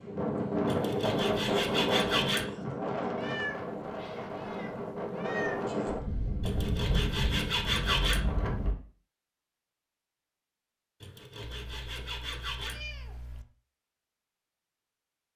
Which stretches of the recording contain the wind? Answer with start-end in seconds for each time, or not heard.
0.0-8.8.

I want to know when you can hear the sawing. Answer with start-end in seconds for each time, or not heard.
0.7-2.5, 6.4-8.2, 11.0-12.8.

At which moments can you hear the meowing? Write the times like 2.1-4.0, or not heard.
3.1-5.7, 11.4-13.4.